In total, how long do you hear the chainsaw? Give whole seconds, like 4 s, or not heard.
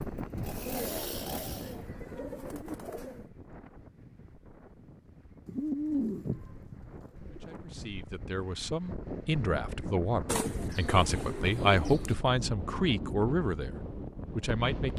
2 s.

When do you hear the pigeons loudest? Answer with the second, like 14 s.
6 s.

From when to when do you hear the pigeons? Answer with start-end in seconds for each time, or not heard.
0.7-3.3, 5.5-7.6, 10.2-12.2.